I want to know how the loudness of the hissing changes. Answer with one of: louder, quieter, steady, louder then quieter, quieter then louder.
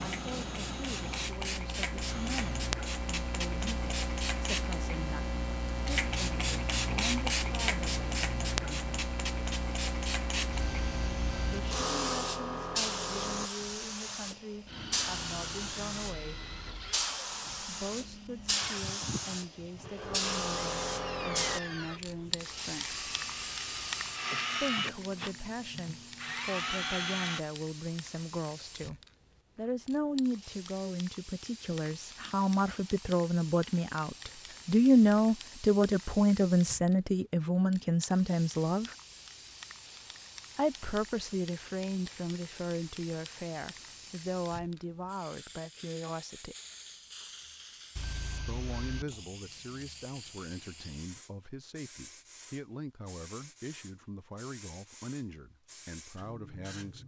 quieter.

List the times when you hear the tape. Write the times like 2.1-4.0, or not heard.
not heard.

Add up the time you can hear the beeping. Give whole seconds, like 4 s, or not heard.
2 s.